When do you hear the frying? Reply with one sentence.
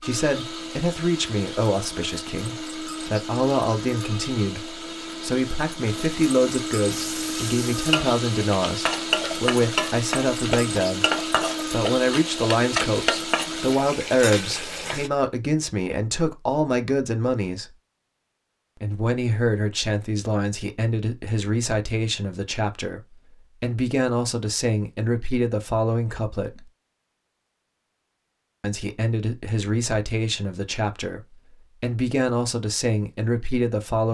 The frying can be heard from 6.9 to 15.1 s.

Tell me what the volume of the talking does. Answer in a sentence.
The loudness of the talking stays about the same.